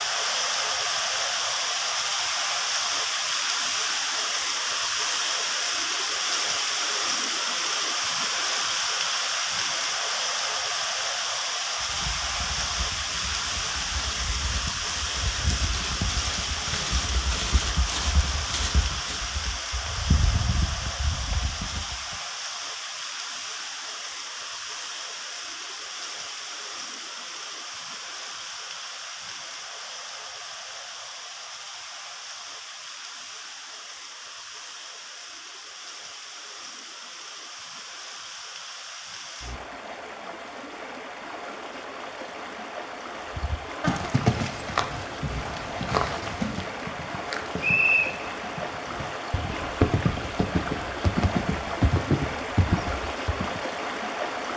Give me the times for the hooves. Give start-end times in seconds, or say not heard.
11.8-22.1, 43.4-53.6.